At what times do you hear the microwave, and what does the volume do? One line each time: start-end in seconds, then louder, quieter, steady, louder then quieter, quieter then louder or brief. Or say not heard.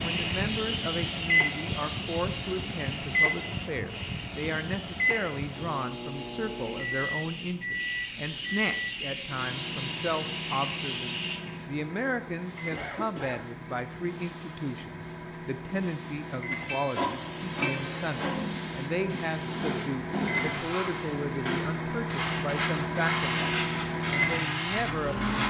0.0-25.4 quieter then louder.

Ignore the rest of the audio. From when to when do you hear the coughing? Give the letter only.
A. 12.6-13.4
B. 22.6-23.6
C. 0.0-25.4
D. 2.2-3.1
A.